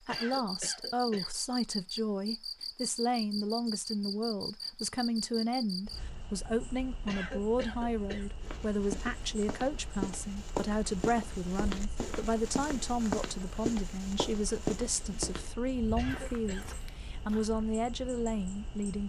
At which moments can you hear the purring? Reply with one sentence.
The purring can't be heard in this clip.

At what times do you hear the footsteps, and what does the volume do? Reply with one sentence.
You can hear the footsteps from 8.4 to 17.6 s, getting quieter.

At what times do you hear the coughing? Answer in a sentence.
The coughing can be heard from 0.1 to 1.3 s, from 7.0 to 8.2 s and from 15.9 to 16.8 s.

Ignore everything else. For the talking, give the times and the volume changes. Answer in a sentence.
You can hear the talking from 0.1 to 19.0 s, at a steady volume.